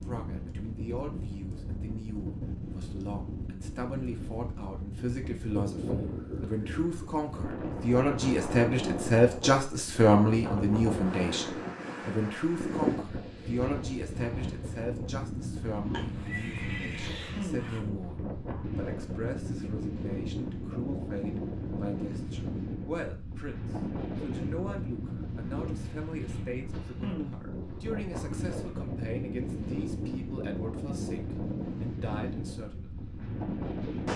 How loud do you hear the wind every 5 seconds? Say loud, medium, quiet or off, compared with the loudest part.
medium, loud, loud, loud, loud, loud, loud.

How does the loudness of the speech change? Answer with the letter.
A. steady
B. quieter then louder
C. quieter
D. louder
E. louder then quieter
E.